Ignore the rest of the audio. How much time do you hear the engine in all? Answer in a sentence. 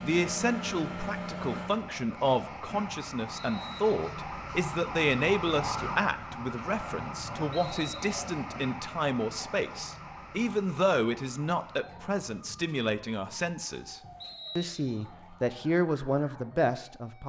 You can hear the engine for 2 seconds altogether.